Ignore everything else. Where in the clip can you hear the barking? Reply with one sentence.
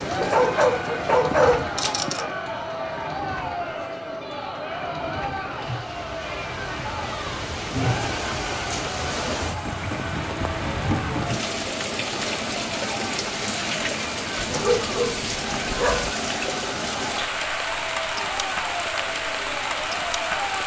You can hear the barking from 0.2 to 2.3 s and from 14.4 to 16.1 s.